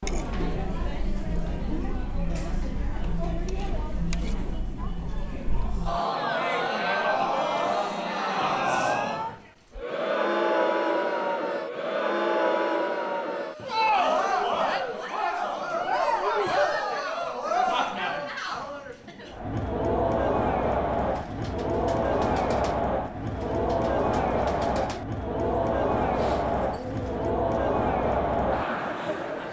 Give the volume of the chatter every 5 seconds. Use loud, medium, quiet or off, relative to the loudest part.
medium, loud, loud, loud, loud, loud.